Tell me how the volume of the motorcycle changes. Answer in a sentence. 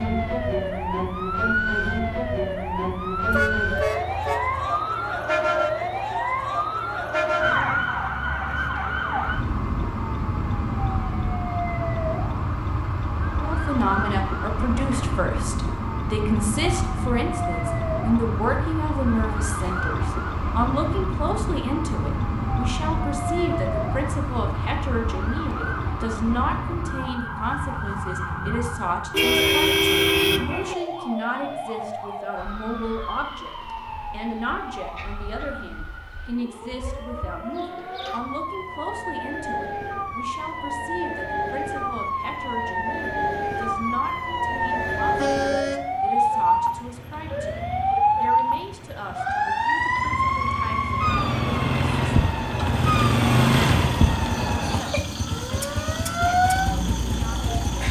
The volume of the motorcycle goes up, then down.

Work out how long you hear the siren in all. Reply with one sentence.
The siren can be heard for 58 seconds in total.